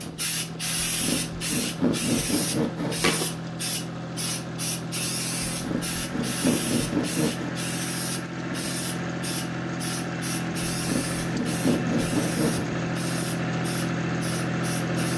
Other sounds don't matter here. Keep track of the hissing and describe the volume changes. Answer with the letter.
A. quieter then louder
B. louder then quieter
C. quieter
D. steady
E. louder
C.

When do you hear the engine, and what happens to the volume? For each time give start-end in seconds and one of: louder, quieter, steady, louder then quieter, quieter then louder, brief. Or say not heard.
0.0-15.1 louder.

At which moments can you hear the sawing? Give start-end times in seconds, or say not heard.
0.8-3.1, 5.5-7.5, 10.8-12.7.